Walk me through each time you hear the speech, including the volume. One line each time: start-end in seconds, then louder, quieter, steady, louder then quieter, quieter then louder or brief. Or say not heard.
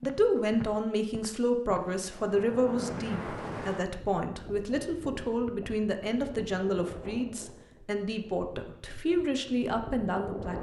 0.0-10.5 steady.